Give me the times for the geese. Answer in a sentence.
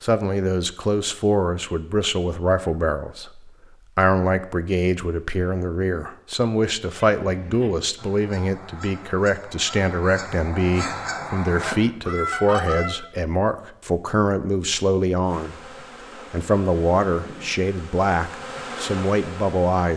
You can hear the geese from 7.2 to 12.9 s.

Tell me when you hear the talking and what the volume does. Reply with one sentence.
You can hear the talking from 0.0 to 19.9 s, at a steady volume.